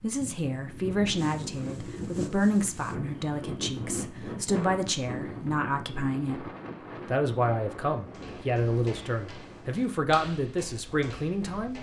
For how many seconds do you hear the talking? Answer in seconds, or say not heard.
11 s.